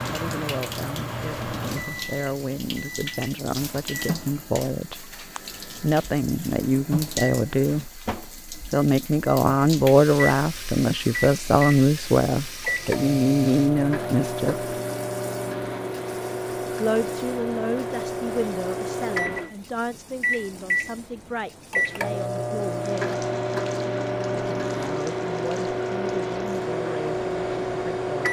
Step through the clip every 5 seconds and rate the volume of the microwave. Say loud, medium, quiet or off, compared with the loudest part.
medium, quiet, loud, loud, loud, loud.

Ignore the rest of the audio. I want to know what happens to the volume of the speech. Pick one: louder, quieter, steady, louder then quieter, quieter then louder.
louder then quieter.